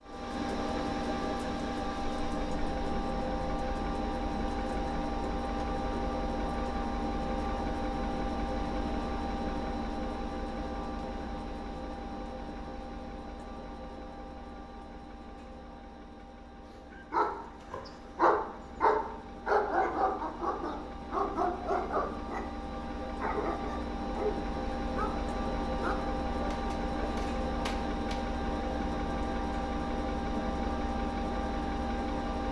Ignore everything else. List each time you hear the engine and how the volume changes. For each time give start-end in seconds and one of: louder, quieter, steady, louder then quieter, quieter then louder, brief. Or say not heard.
0.0-32.4 quieter then louder.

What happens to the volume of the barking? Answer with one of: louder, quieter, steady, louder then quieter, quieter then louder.
quieter.